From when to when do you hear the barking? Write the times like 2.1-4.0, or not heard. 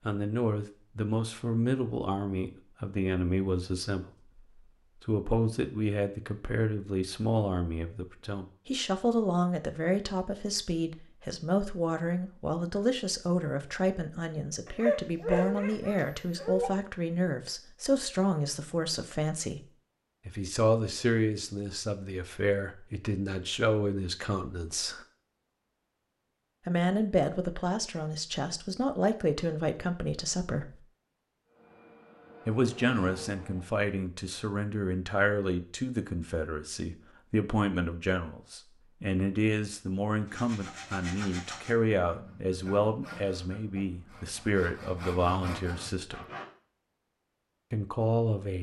14.7-16.7.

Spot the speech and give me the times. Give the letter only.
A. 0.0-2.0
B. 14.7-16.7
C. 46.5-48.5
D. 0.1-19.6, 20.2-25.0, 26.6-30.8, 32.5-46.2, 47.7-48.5
D.